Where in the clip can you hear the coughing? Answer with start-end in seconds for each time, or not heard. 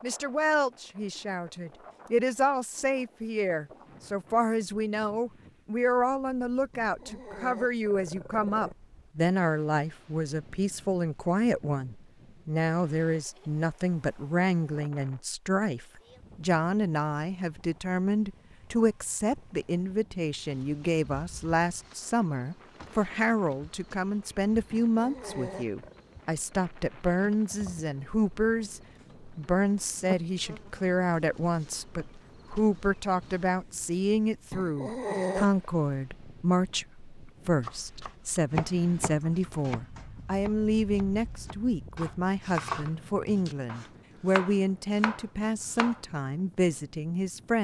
not heard.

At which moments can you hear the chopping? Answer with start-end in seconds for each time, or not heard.
37.6-46.0.